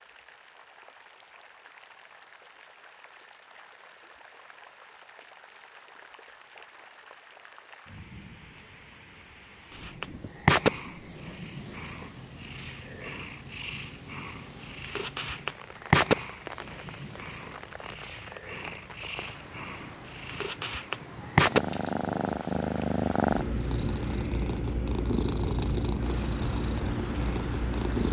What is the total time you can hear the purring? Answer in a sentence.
You can hear the purring for 18 seconds altogether.